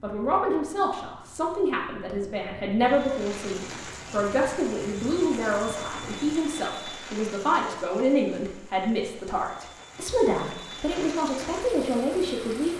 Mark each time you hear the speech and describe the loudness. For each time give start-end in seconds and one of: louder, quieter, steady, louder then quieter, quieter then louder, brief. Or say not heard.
0.0-12.7 steady.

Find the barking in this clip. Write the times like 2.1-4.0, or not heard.
not heard.